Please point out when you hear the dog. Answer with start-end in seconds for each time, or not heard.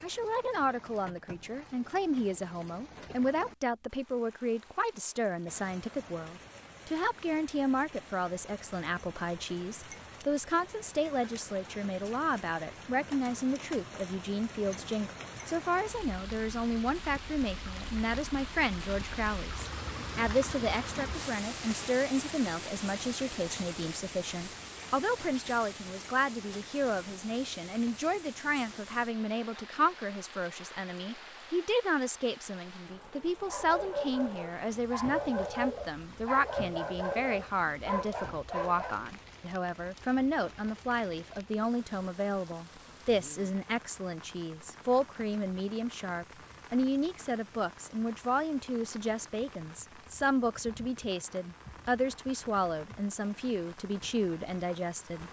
33.5-39.0.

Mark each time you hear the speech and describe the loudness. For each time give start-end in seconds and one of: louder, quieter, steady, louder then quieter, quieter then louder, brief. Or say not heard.
0.0-55.2 steady.